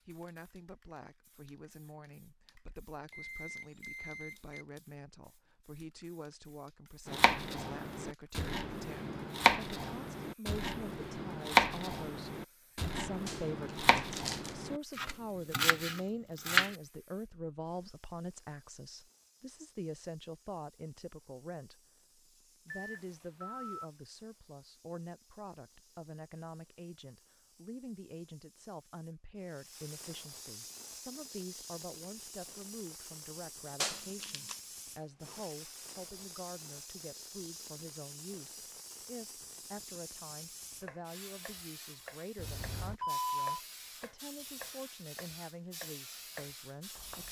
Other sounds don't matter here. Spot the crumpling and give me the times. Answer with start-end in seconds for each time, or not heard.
13.2-14.6, 33.8-34.6.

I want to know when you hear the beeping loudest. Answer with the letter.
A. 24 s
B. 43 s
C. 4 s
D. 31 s
B.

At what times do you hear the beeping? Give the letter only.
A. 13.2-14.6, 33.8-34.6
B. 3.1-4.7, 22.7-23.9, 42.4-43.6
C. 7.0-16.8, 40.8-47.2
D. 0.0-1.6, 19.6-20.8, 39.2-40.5
B.